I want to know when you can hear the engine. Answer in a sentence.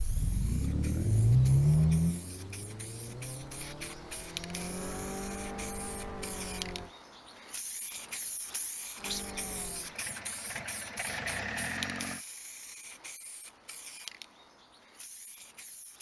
The engine can be heard from 0.0 to 6.9 s and from 9.0 to 12.2 s.